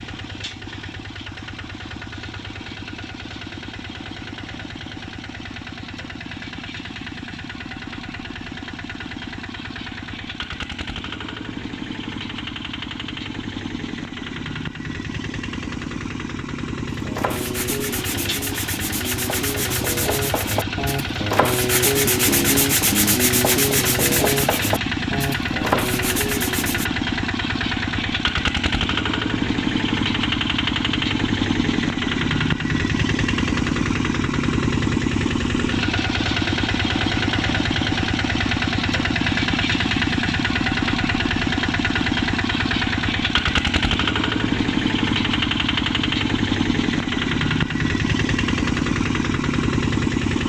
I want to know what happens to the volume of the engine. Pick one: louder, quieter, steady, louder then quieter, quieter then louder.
louder.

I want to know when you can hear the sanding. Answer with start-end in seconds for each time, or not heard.
16.9-26.9.